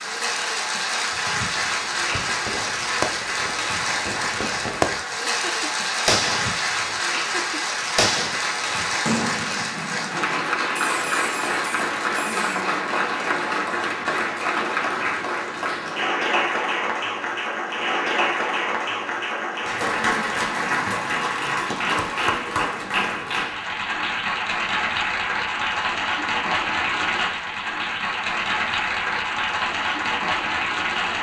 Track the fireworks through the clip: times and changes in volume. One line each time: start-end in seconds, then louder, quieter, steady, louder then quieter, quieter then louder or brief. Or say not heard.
1.5-12.7 louder then quieter.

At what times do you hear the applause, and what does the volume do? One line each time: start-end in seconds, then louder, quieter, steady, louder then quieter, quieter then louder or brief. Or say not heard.
0.0-31.1 steady.